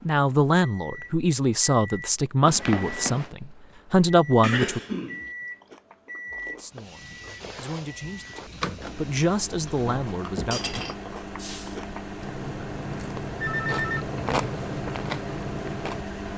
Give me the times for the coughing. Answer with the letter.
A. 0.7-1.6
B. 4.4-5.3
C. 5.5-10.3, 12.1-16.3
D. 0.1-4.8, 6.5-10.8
B.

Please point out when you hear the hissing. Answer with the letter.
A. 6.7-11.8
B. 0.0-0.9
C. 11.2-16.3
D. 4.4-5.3
A.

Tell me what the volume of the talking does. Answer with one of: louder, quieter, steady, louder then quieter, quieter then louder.
quieter.